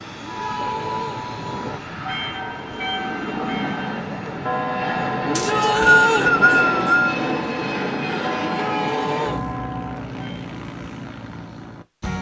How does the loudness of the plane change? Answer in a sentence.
The loudness of the plane goes up, then down.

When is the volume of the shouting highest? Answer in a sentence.
The volume of the shouting peaks at 6 seconds.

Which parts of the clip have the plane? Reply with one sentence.
You can hear the plane from 0.0 to 12.1 s.